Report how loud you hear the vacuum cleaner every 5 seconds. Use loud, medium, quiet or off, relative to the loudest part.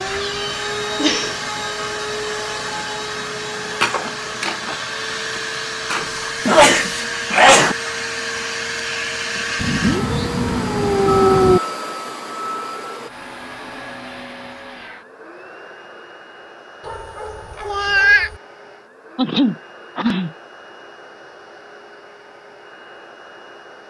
loud, loud, loud, quiet, quiet.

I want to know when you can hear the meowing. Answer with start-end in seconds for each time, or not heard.
0.1-1.4, 9.6-11.6, 16.9-18.4.